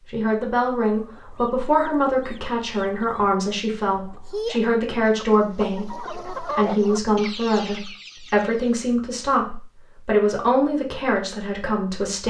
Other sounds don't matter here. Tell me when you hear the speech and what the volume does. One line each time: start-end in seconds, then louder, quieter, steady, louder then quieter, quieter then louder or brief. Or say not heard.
0.1-12.2 steady.